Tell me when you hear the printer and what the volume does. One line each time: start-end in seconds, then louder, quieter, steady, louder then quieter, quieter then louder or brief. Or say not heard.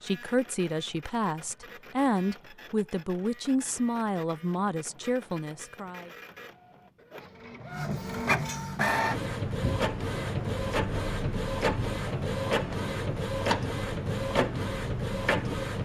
0.0-15.8 louder.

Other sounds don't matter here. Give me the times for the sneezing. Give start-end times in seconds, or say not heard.
not heard.